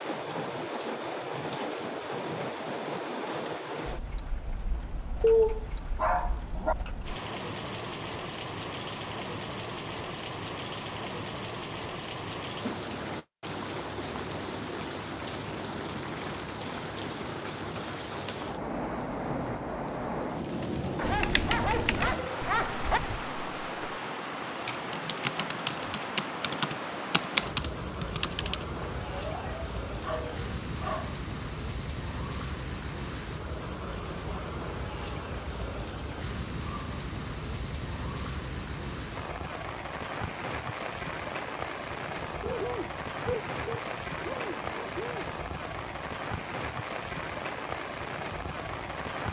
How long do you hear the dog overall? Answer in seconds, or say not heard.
9 s.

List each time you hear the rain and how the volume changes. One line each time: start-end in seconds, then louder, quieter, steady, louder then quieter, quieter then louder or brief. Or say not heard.
0.0-49.2 steady.